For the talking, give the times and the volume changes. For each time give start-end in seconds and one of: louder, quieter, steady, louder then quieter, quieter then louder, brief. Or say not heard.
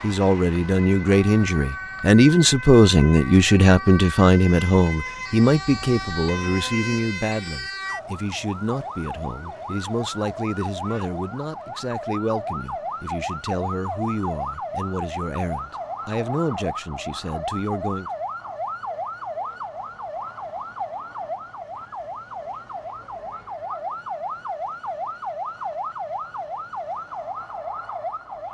0.0-18.1 quieter.